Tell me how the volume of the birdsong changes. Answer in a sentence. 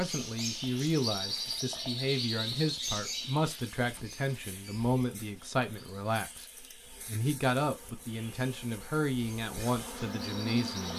The volume of the birdsong goes down, then up.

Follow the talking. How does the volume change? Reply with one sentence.
The volume of the talking stays about the same.